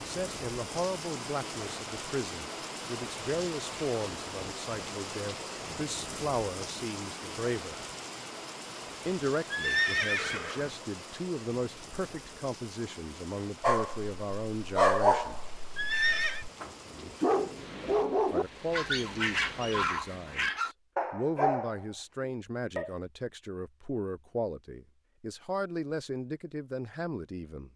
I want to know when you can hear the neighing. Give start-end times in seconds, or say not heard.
9.5-10.7, 15.8-16.4.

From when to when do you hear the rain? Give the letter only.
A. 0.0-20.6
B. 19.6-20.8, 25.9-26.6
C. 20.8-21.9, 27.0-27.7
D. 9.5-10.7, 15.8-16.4
A.